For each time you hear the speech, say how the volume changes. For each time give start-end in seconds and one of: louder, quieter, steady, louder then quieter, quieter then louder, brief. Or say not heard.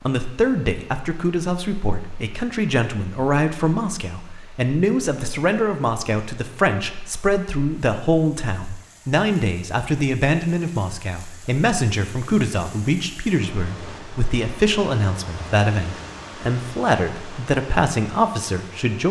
0.0-19.0 steady.